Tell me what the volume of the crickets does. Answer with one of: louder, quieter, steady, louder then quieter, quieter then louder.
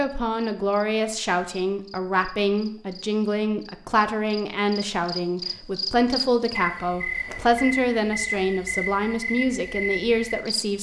louder.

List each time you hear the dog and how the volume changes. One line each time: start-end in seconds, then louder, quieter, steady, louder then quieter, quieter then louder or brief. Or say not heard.
not heard.